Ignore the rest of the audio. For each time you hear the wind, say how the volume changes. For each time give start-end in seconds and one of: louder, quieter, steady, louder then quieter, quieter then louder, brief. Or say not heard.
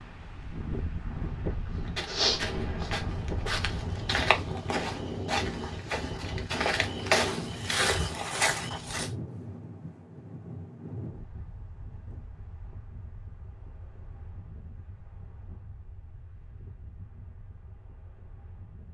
0.0-18.8 quieter.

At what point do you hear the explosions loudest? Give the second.
3 s.